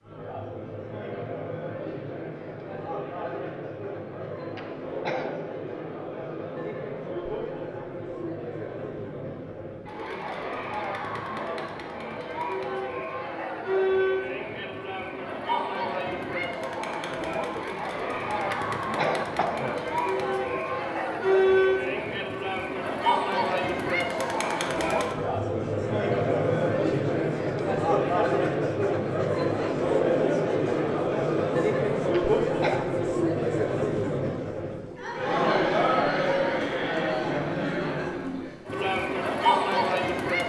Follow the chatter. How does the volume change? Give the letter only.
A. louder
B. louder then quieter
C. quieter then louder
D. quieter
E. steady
A.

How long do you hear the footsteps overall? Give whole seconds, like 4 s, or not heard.
not heard.